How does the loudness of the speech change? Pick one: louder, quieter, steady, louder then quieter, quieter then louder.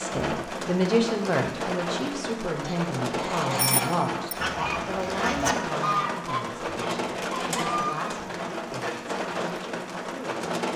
quieter.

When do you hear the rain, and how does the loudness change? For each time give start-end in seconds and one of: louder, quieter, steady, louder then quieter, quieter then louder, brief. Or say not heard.
0.0-10.7 steady.